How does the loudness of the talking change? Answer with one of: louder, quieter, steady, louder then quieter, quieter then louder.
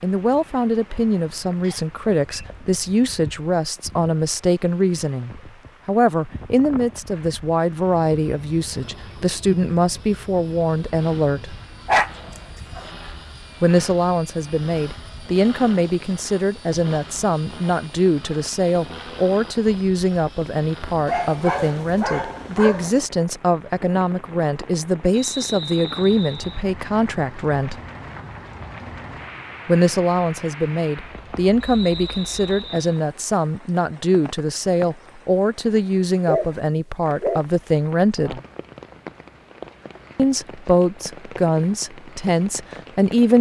steady.